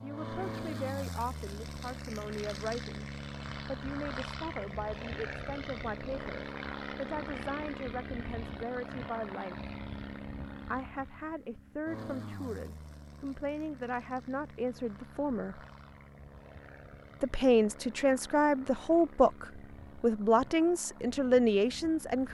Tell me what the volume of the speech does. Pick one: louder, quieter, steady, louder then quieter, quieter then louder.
louder.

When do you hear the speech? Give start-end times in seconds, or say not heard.
0.0-9.7, 10.7-15.6, 17.2-22.2.